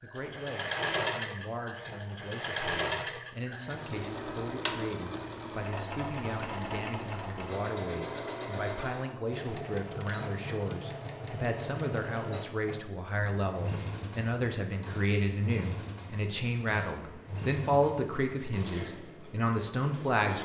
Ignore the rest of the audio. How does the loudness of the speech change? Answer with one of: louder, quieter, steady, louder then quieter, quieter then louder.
louder.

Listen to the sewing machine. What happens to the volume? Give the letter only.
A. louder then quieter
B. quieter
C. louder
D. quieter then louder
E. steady
B.